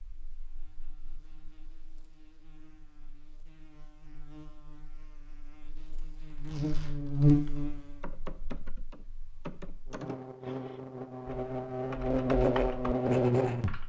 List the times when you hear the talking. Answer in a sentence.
The talking can't be heard in this clip.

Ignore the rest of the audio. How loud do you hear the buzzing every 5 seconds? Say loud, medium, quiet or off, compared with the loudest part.
quiet, loud, loud.